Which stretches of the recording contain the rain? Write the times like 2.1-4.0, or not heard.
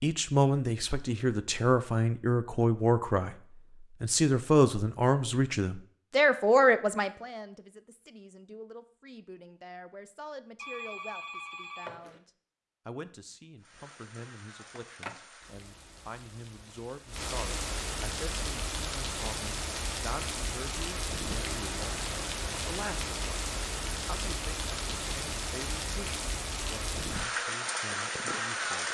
13.6-28.8.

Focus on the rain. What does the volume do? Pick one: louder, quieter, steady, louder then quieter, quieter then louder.
louder.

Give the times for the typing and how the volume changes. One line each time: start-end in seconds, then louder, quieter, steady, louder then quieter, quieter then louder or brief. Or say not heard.
not heard.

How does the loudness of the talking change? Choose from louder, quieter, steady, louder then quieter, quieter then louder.
quieter.